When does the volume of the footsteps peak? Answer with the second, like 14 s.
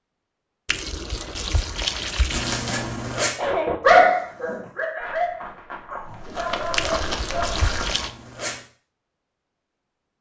7 s.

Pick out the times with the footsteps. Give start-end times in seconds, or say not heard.
4.2-8.0.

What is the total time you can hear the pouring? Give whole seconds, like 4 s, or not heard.
3 s.